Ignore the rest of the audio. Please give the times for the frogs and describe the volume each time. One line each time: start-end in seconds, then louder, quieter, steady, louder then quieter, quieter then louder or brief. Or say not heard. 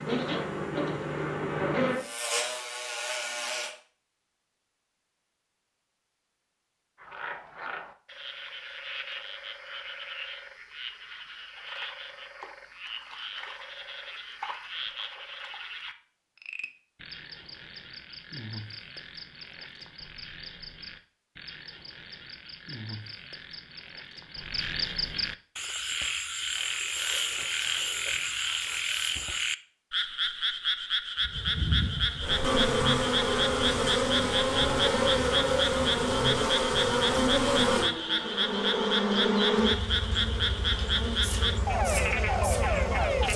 7.0-43.3 louder.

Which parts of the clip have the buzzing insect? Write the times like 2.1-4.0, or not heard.
0.0-3.7, 31.2-43.3.